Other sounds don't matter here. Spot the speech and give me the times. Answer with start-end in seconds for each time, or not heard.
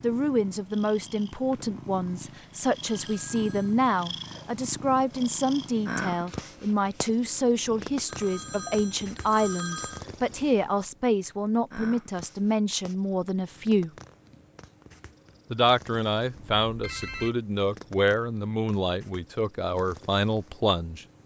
0.0-13.9, 15.5-21.1.